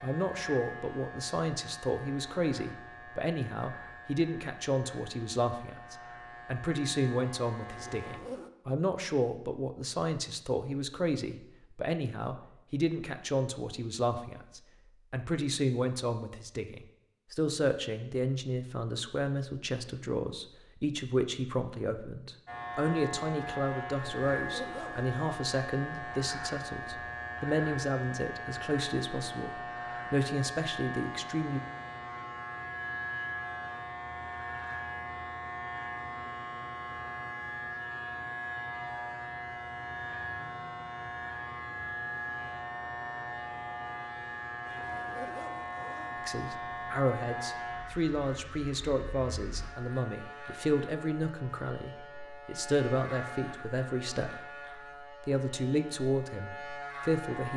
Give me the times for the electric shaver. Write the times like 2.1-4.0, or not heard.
0.0-8.2, 22.4-57.5.